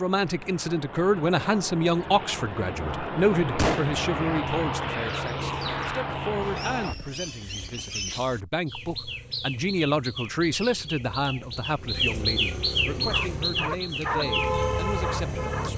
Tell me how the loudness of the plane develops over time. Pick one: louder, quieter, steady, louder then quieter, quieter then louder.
louder.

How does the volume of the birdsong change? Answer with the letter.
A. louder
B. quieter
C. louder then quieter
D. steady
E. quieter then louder
A.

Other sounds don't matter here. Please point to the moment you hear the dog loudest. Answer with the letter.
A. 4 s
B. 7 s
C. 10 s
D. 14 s
D.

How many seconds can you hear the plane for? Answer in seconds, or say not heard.
7 s.